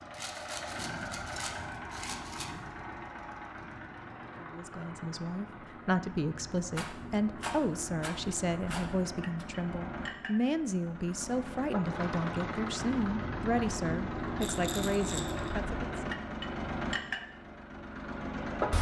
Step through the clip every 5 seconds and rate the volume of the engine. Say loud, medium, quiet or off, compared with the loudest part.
medium, medium, loud, loud.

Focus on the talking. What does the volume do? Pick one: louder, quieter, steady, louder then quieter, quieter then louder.
steady.